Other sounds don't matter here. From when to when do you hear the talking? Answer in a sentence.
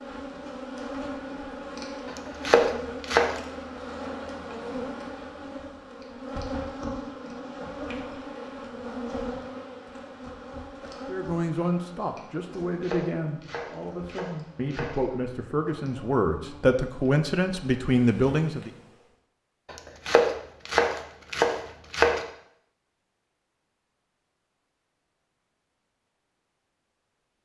You can hear the talking from 11.1 to 18.7 s.